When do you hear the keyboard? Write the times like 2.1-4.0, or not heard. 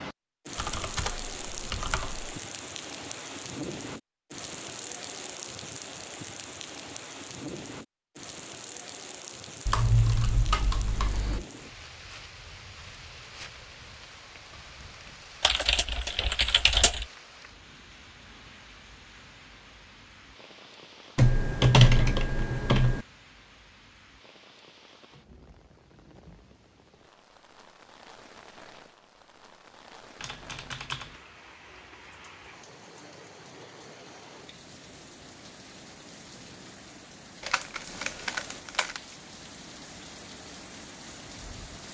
0.6-2.3, 9.7-11.4, 15.4-17.1, 21.1-23.1, 30.2-31.1, 37.4-39.0.